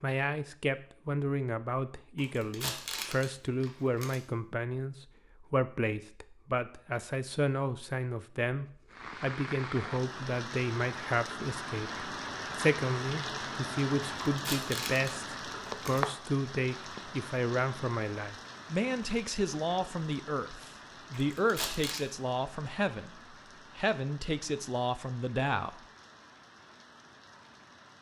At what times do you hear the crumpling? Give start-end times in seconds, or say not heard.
2.1-4.2, 14.2-16.0, 21.1-22.0.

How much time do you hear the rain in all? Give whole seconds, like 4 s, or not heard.
19 s.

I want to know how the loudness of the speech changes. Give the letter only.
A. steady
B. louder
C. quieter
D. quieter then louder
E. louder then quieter
A.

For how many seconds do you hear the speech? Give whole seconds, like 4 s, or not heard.
26 s.